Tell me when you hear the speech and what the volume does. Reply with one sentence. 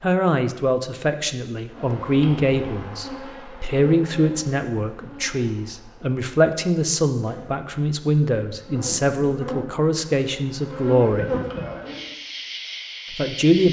You can hear the speech from 0.0 to 11.3 s, at a steady volume; and briefly from 13.1 to 13.6 s.